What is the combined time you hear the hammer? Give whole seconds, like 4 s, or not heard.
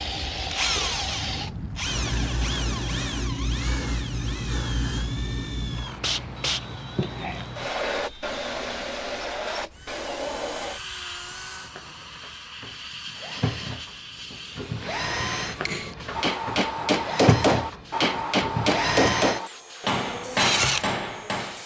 6 s.